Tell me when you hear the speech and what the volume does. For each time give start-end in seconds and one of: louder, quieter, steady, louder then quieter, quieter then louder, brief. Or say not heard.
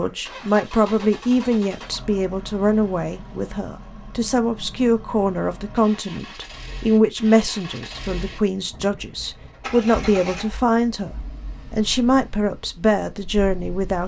0.0-14.0 steady.